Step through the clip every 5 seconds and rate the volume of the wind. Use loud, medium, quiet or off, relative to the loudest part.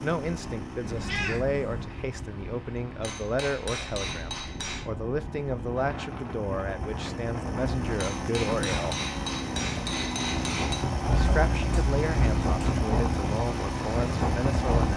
quiet, medium, loud.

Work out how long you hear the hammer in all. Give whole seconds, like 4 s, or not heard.
5 s.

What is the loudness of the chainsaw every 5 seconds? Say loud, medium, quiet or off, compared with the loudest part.
medium, loud, loud.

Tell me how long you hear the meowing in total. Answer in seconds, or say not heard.
3 s.